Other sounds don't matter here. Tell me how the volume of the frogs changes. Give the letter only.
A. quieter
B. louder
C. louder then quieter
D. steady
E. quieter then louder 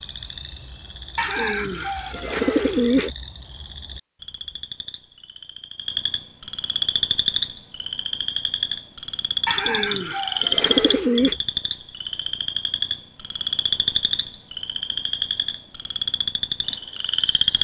B.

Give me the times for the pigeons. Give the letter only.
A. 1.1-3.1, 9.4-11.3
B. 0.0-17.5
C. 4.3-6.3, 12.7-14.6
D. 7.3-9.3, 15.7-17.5
A.